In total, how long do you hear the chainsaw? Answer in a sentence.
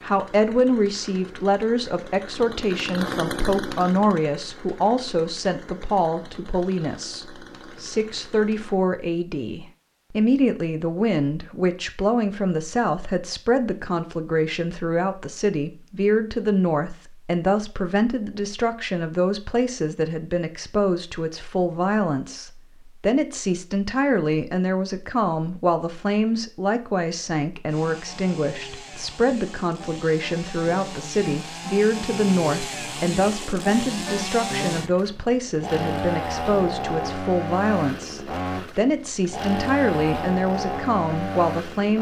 You can hear the chainsaw for 23 seconds altogether.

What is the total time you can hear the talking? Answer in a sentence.
You can hear the talking for 42 seconds altogether.